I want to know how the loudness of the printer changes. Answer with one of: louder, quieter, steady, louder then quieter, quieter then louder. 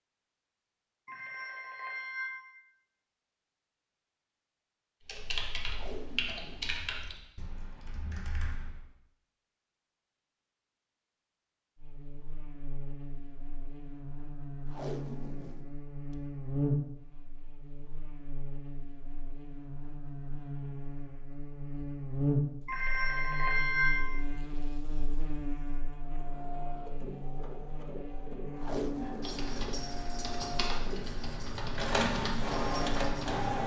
louder.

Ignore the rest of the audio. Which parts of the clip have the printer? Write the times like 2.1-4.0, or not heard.
25.8-33.6.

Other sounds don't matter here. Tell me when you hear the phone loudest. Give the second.
24 s.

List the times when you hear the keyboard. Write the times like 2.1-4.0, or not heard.
5.0-8.8, 29.0-33.5.